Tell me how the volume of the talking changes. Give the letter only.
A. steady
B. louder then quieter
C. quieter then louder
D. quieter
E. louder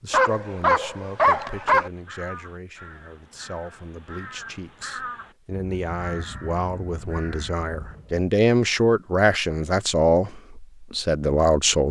E.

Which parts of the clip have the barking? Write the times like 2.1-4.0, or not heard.
0.1-1.9.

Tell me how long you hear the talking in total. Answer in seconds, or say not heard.
12 s.